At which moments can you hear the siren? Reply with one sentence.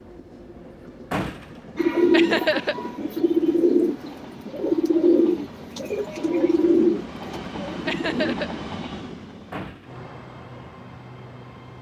You can't hear the siren here.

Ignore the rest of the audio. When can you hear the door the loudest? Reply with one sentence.
The volume of the door peaks at 1 second.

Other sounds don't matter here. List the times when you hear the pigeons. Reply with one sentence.
The pigeons can be heard from 1.8 to 8.3 s.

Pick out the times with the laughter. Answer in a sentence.
You can hear the laughter from 2.1 to 2.8 s and from 7.8 to 8.5 s.